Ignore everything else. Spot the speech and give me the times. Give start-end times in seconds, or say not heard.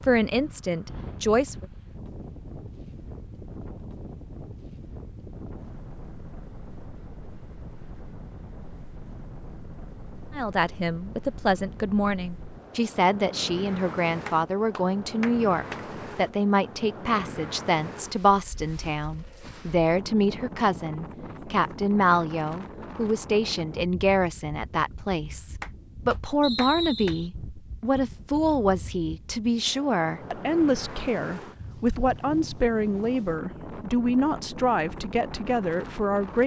0.0-1.6, 10.3-36.4.